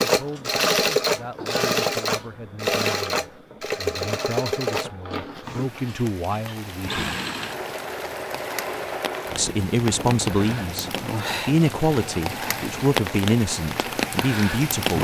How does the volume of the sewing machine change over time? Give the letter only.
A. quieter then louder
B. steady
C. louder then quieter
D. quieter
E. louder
D.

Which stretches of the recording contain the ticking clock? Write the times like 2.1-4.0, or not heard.
not heard.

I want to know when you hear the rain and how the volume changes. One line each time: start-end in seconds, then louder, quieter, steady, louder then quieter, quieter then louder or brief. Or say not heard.
5.4-14.9 louder.